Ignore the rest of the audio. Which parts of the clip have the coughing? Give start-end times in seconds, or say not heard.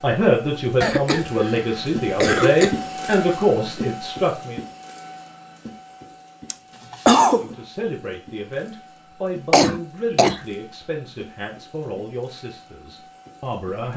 0.8-2.8, 6.5-7.5, 9.5-10.4.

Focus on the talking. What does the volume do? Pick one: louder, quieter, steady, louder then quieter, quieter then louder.
quieter.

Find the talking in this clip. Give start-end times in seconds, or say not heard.
0.0-4.6, 7.2-13.9.